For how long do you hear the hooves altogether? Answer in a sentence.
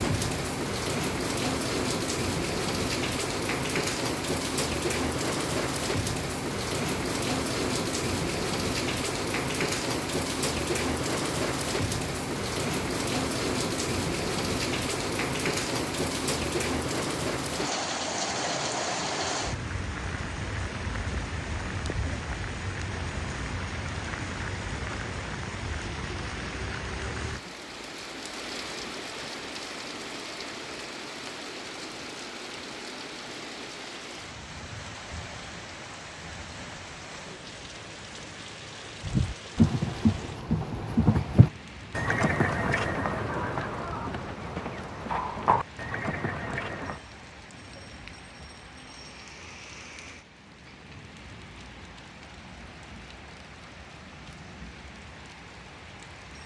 The hooves can be heard for 8 seconds in total.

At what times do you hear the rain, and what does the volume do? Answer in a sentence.
The rain can be heard from 0.0 to 56.4 s, getting quieter.